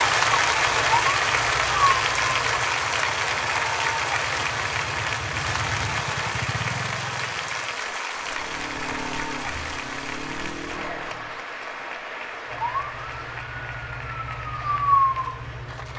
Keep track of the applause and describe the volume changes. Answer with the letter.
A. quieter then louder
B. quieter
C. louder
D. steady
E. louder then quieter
B.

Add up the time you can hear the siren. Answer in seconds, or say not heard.
6 s.